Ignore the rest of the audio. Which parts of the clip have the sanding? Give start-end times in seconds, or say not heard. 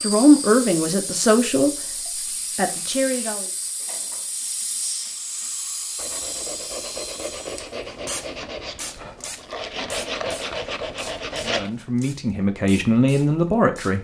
2.1-11.7.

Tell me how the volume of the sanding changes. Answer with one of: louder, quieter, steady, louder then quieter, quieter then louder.
quieter then louder.